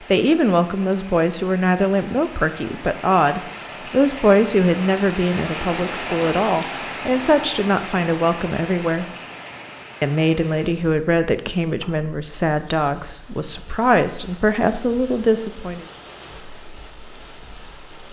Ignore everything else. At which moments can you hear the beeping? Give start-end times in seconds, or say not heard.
not heard.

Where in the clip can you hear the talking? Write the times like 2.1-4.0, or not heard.
0.0-9.1, 10.0-15.8.